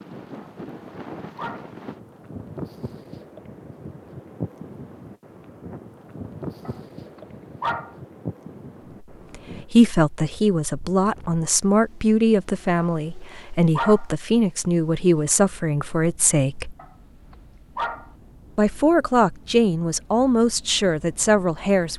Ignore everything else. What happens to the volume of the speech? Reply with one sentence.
The loudness of the speech stays about the same.